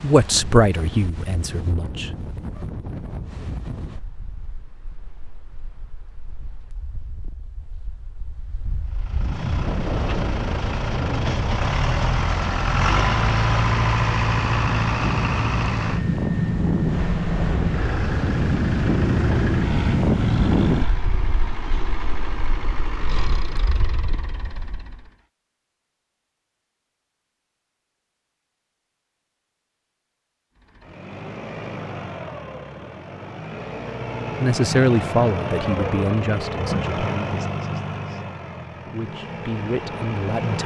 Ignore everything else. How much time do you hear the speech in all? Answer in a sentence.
You can hear the speech for 8 seconds altogether.